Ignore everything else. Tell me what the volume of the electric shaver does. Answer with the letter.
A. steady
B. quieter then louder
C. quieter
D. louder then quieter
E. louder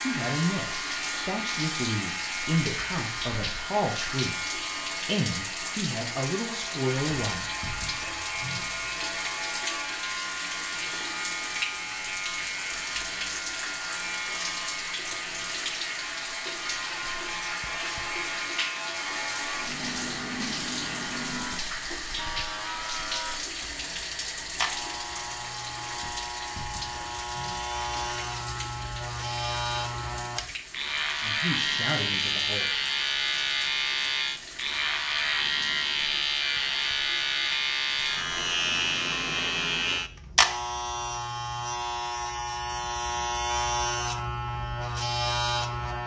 E.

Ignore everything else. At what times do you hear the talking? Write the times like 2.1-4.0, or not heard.
0.0-4.4, 5.0-7.5, 31.2-32.7.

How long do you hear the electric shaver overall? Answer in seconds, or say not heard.
46 s.